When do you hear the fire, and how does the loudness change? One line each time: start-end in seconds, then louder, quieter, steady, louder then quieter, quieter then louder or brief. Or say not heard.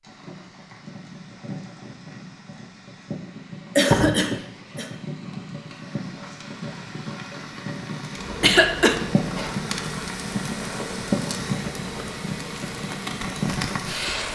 0.0-14.3 louder.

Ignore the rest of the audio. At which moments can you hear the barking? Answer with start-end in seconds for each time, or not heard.
not heard.